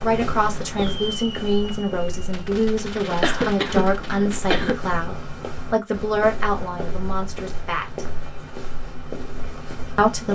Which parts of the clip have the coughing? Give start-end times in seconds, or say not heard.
3.1-4.8.